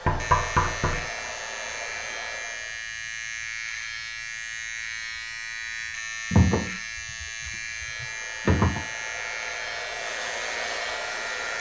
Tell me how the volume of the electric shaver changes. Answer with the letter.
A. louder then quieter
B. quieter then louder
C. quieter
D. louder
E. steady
E.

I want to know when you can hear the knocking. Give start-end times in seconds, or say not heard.
0.1-1.1, 6.3-8.8.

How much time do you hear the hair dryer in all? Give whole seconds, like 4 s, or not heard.
7 s.